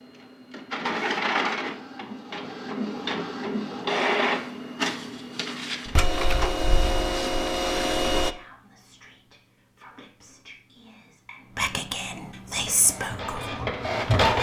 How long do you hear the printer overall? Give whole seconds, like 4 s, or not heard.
10 s.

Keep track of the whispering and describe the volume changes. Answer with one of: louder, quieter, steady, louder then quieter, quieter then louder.
louder.